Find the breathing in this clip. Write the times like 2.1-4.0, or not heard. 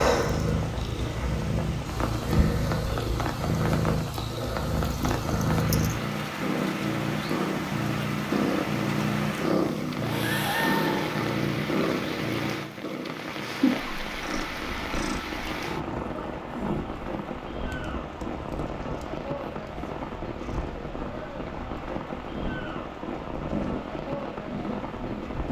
10.0-11.2.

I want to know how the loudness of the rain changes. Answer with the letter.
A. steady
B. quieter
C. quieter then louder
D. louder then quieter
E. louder
A.